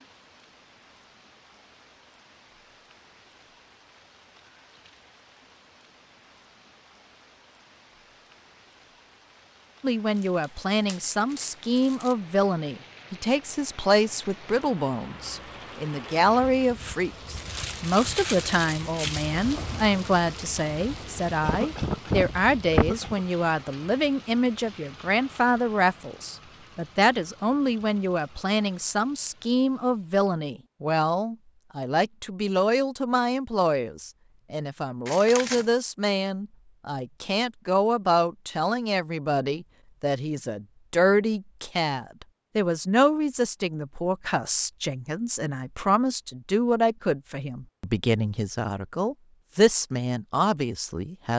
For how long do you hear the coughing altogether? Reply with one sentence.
You can hear the coughing for 2 seconds altogether.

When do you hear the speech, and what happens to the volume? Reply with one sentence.
You can hear the speech from 9.8 to 51.3 s, at a steady volume.